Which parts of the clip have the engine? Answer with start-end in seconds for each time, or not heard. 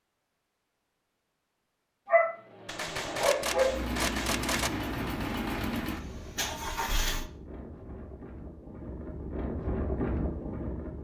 3.4-7.3.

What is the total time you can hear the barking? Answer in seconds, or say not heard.
2 s.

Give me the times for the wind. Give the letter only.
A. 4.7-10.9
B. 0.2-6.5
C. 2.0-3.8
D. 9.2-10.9
A.